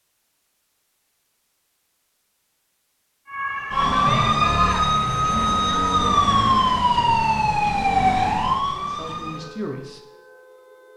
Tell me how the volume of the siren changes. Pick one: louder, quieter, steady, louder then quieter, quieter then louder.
quieter.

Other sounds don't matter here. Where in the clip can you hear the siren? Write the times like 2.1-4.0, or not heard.
3.2-10.9.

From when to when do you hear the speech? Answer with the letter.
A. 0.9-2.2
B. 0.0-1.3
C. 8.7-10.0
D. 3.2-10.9
C.